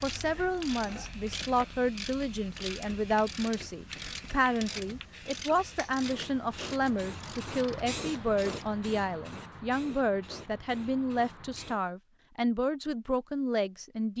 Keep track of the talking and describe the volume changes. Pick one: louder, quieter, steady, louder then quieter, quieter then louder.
steady.